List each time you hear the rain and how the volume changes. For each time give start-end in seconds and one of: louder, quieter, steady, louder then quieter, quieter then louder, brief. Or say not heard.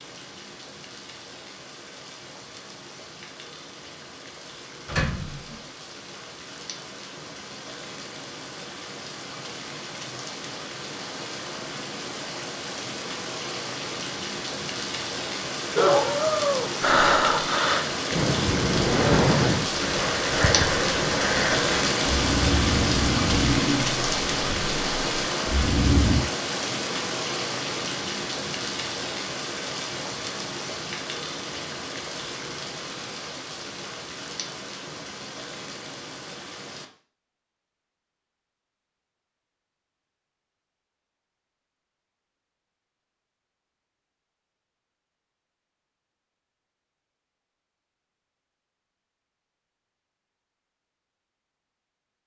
0.0-36.9 louder then quieter.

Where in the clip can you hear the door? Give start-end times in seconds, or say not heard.
4.8-5.6.